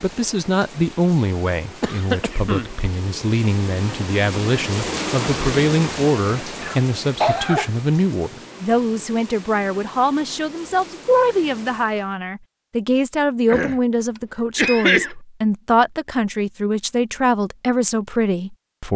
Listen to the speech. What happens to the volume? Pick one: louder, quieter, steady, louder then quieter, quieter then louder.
steady.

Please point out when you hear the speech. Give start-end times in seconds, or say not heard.
0.0-18.9.